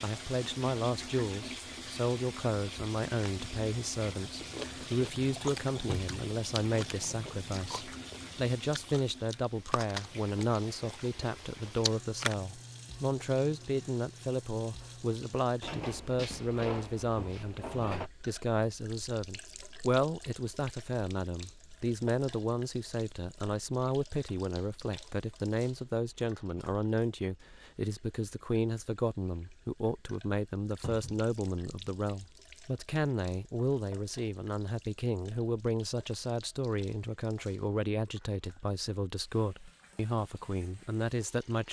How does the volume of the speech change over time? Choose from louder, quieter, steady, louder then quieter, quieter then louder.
steady.